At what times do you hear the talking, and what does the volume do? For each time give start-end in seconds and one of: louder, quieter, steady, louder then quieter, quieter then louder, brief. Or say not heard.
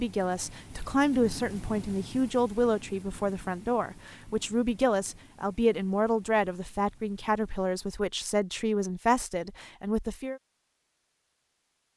0.0-10.4 steady.